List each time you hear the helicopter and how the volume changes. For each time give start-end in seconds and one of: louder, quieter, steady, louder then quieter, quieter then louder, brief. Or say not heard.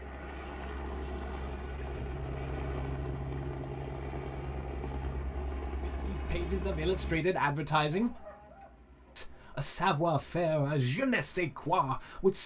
0.0-12.4 quieter.